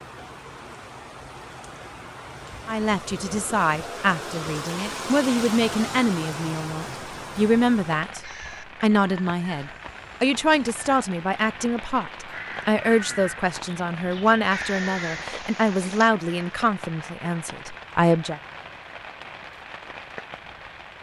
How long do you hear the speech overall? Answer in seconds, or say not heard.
15 s.